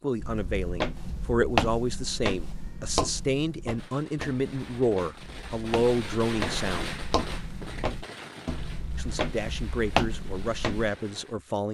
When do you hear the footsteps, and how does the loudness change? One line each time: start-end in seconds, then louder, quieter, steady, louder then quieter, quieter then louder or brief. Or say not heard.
0.1-10.9 quieter then louder.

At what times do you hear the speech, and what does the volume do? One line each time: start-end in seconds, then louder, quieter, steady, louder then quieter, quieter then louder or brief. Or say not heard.
0.0-7.0 steady
8.9-11.6 brief.